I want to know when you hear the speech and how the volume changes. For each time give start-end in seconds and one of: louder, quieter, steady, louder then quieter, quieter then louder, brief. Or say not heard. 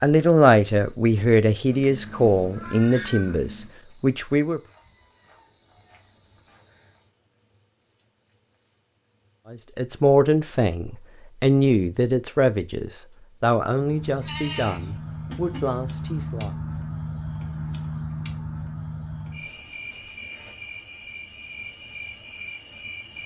0.0-4.6 quieter
9.5-16.6 quieter.